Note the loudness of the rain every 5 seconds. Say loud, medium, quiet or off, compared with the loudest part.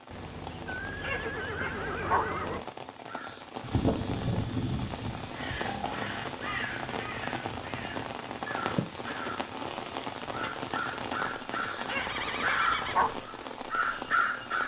medium, loud, loud.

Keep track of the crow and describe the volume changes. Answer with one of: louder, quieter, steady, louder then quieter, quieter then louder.
quieter then louder.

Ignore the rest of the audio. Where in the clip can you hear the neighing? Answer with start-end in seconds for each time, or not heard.
0.1-2.6, 5.6-6.0, 11.6-13.1.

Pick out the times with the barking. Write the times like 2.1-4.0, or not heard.
1.0-2.3, 11.8-13.2.